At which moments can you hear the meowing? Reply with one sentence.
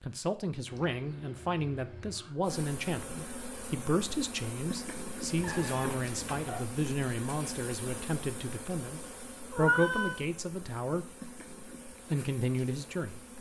The meowing can be heard from 0.7 to 2.4 s, from 5.3 to 6.7 s and from 9.5 to 10.2 s.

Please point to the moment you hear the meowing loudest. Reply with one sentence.
The loudest moment of the meowing is at 10 seconds.